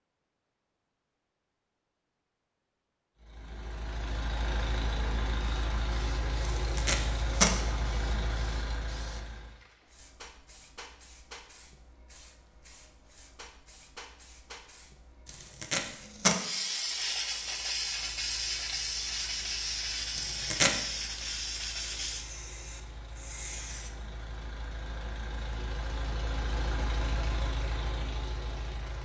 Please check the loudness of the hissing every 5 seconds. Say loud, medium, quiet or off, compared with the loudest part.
off, quiet, quiet, loud, loud, off.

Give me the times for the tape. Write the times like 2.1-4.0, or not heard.
6.5-7.5, 15.2-16.4, 20.1-20.7.